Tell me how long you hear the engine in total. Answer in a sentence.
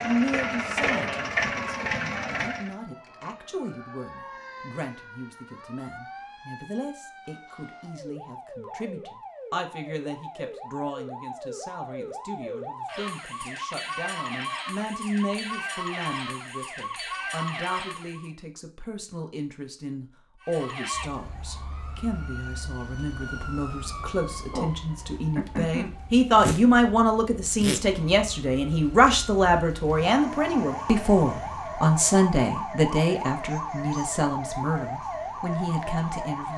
You can hear the engine for 3 seconds altogether.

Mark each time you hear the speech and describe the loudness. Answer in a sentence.
You can hear the speech from 0.0 to 36.5 s, getting louder.